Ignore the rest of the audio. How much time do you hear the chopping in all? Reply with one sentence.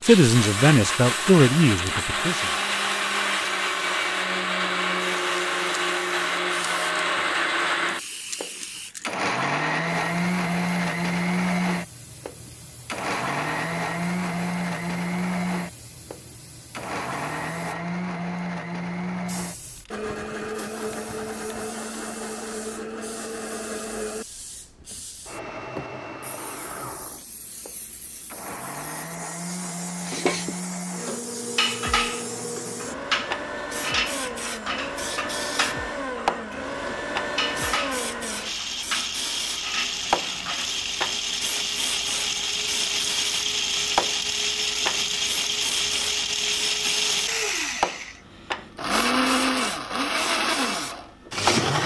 The chopping can't be heard in this clip.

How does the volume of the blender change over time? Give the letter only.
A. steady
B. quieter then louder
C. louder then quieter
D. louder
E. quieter
B.